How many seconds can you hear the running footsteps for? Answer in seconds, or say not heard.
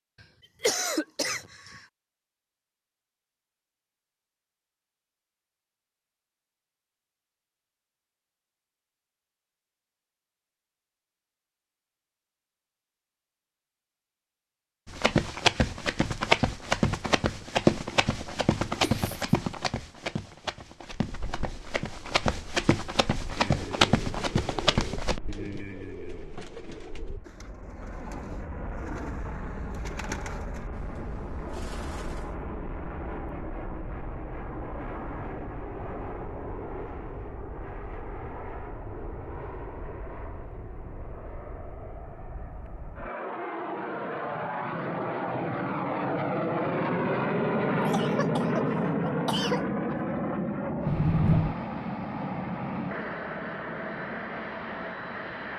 10 s.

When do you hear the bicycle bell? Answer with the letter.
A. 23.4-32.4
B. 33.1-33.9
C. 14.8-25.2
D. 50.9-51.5
D.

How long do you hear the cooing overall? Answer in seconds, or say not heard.
9 s.